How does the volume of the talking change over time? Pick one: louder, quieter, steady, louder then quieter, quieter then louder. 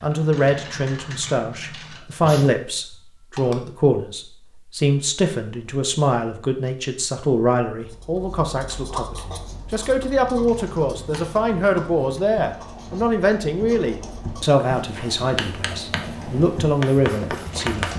steady.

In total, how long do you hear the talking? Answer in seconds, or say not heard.
18 s.